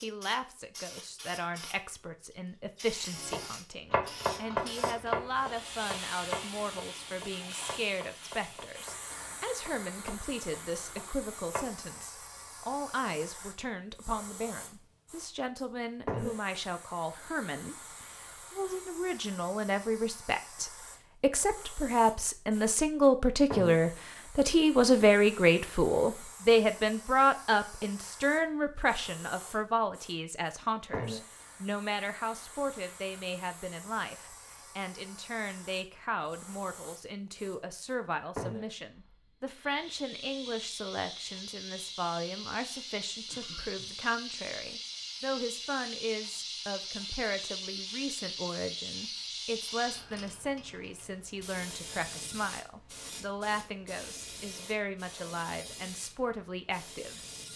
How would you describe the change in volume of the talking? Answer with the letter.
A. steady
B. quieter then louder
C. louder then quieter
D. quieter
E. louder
C.